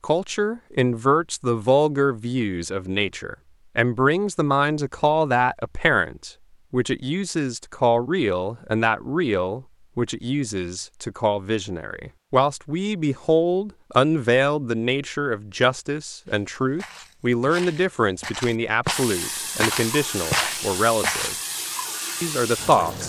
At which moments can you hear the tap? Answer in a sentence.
You can hear the tap from 18.9 to 23.0 s.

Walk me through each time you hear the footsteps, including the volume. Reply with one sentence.
The footsteps can be heard from 16.2 to 21.4 s, getting louder.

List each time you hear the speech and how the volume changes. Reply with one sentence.
You can hear the speech from 0.0 to 21.4 s, at a steady volume; and briefly from 22.2 to 23.0 s.